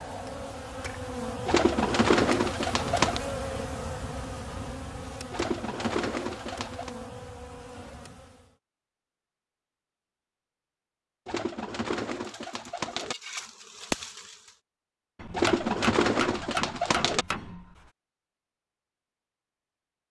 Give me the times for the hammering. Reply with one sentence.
You can hear the hammering from 0.2 to 1.0 s and from 15.2 to 17.9 s.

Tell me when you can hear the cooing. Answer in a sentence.
The cooing can be heard from 1.4 to 3.2 s, from 5.3 to 6.9 s, from 11.2 to 13.2 s and from 15.3 to 17.2 s.